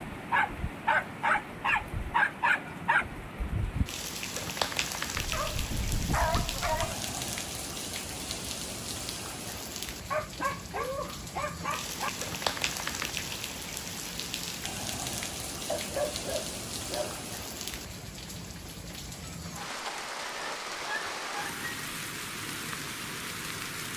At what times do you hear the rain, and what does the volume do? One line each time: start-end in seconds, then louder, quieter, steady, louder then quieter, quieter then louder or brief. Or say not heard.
0.0-23.9 steady.